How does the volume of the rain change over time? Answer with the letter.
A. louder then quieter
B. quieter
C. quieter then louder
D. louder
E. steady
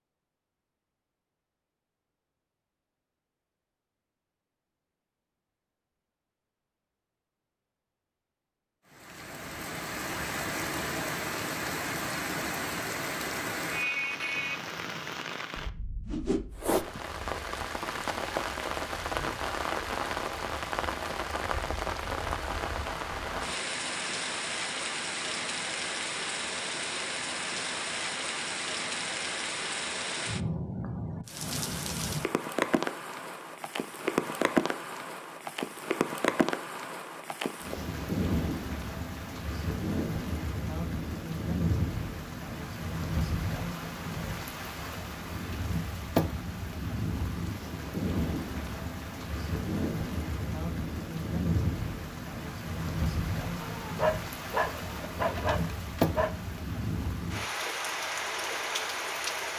E.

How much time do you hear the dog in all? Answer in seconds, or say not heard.
3 s.